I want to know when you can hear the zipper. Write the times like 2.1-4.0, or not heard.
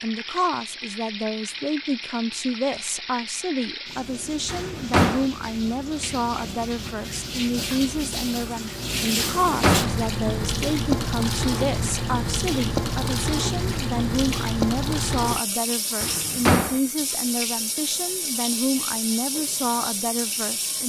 not heard.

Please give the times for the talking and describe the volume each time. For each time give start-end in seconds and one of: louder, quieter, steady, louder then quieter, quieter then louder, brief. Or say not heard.
0.0-20.8 steady.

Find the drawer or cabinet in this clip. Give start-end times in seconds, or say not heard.
4.5-5.2, 9.2-9.9, 16.0-16.8.